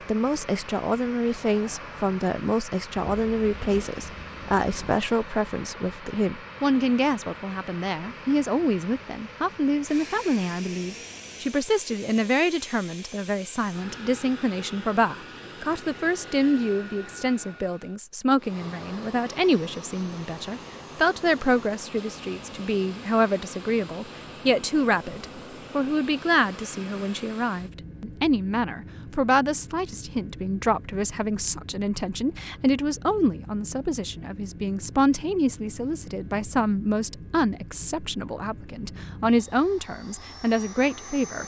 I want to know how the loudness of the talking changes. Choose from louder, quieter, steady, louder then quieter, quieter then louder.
steady.